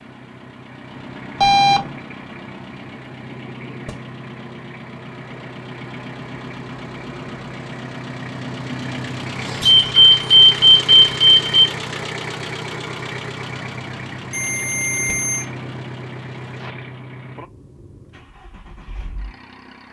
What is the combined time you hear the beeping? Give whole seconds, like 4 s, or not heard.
4 s.